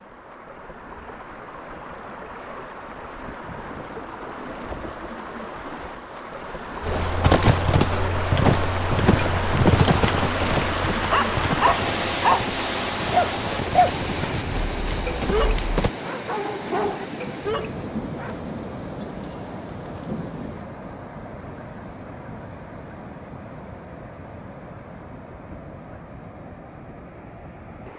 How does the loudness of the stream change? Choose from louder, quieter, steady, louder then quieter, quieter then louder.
louder then quieter.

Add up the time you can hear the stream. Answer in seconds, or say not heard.
28 s.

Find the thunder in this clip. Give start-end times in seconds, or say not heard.
3.5-5.5, 16.6-20.6.